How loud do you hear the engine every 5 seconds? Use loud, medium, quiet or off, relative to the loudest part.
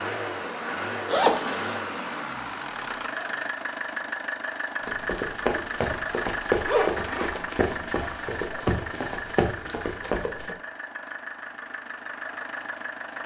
loud, loud, medium.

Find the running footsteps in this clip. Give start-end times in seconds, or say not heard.
4.8-10.6.